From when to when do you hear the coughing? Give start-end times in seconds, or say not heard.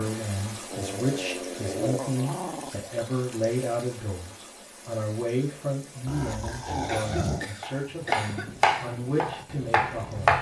6.8-8.6.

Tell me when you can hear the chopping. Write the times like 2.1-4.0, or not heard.
7.6-10.3.